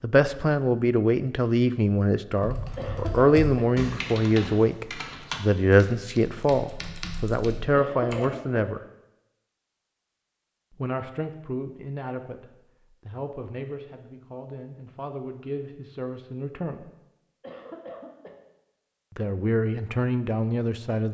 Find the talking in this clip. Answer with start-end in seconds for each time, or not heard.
0.0-8.8, 10.8-16.9, 19.1-21.0.